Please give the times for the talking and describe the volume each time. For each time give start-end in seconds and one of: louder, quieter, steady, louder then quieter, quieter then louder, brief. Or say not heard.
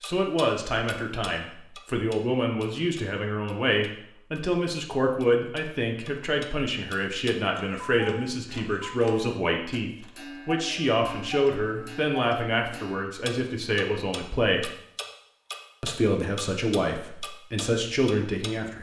0.0-14.7 steady
15.8-18.7 brief.